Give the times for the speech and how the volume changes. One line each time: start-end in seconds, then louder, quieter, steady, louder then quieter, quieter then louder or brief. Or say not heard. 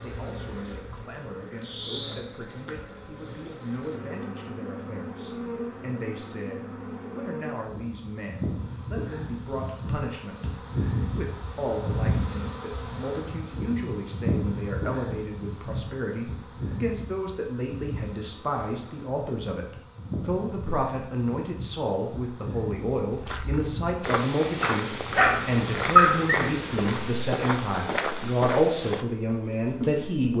0.0-30.3 louder.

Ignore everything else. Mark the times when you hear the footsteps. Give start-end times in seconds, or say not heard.
23.1-29.1.